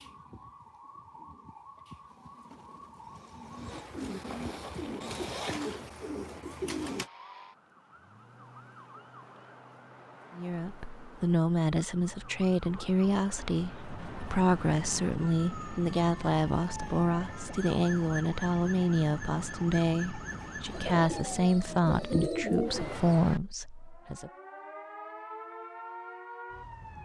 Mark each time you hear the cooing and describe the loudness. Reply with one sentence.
You can hear the cooing from 0.0 to 7.1 s, getting louder; and briefly from 20.7 to 23.2 s.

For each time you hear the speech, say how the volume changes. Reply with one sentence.
You can hear the speech from 10.3 to 24.3 s, at a steady volume.